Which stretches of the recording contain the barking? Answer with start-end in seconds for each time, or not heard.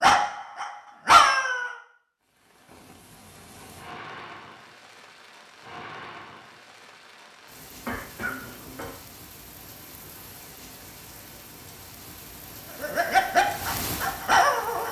0.0-1.8, 12.8-14.8.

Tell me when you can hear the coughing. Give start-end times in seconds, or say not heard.
7.8-8.9.